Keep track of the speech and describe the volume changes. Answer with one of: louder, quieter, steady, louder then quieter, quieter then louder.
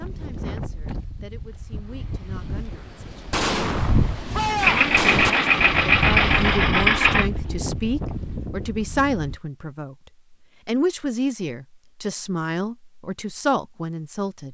louder.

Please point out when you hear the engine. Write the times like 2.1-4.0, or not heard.
4.5-7.3.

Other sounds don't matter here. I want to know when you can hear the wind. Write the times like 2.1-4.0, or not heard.
0.0-9.4.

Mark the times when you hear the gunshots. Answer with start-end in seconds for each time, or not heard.
3.3-5.3.